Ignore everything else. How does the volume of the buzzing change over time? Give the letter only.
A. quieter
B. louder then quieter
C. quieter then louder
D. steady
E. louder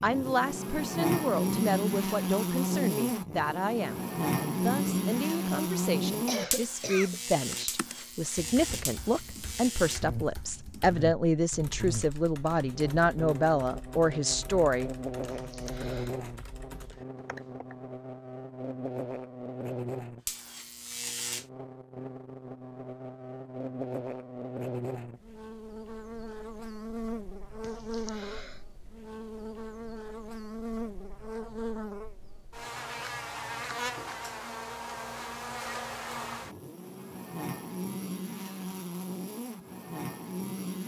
A.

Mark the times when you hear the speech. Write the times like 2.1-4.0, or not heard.
0.0-14.9.